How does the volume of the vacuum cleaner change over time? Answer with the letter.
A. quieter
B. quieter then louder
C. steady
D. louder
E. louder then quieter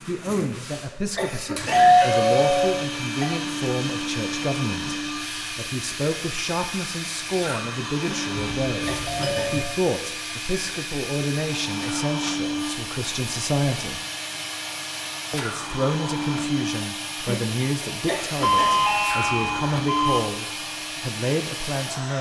C.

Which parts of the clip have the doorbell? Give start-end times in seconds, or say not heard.
1.6-3.2, 8.3-9.6, 18.4-20.2.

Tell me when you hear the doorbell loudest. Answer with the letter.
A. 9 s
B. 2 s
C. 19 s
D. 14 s
B.